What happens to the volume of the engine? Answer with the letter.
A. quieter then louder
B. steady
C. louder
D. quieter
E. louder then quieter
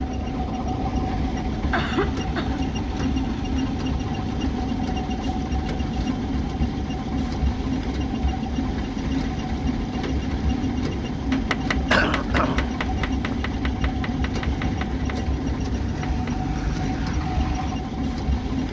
B.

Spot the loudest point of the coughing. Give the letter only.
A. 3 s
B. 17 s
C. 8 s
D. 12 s
D.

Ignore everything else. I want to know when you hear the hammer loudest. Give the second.
12 s.